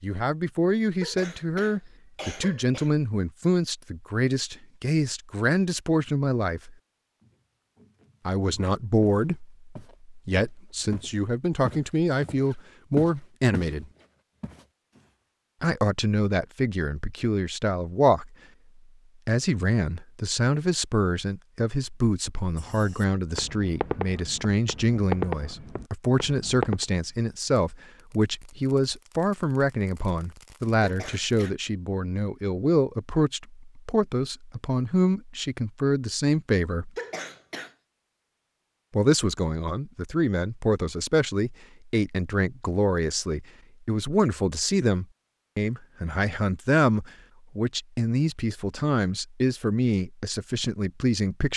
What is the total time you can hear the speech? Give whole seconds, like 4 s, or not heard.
45 s.